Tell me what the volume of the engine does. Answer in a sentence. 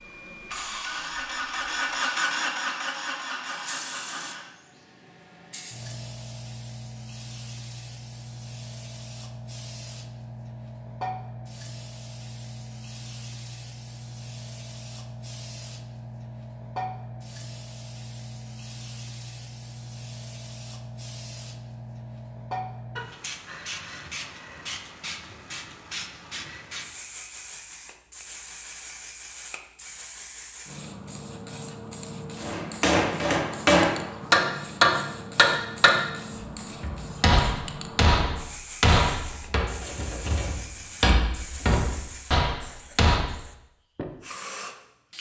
The volume of the engine goes up, then down.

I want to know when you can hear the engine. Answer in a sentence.
The engine can be heard from 0.0 to 4.5 s.